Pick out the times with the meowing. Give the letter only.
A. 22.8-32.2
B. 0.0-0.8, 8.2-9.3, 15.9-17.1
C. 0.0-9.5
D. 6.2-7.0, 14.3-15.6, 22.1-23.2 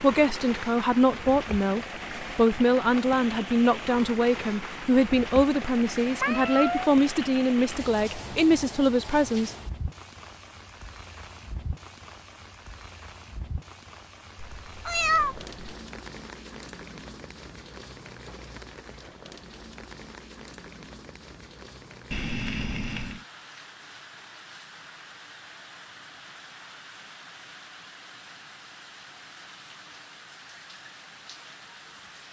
D.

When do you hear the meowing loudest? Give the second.
15 s.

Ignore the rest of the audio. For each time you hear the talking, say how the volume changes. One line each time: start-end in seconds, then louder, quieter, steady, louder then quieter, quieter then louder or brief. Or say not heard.
0.0-9.5 steady.